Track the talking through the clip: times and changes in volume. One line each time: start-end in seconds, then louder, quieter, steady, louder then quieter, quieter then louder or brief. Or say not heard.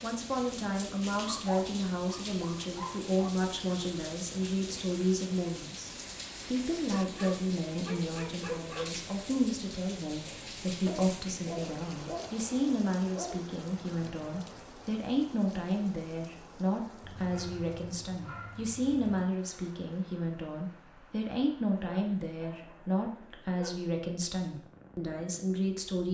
0.0-26.0 steady.